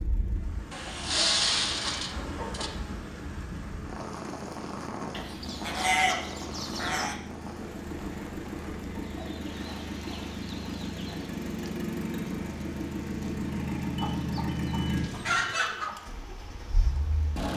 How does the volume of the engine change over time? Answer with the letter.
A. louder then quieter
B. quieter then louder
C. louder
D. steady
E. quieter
C.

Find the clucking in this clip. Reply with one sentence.
The clucking can be heard from 0.7 to 2.7 s, from 5.1 to 7.2 s, from 9.0 to 11.3 s and from 13.9 to 15.9 s.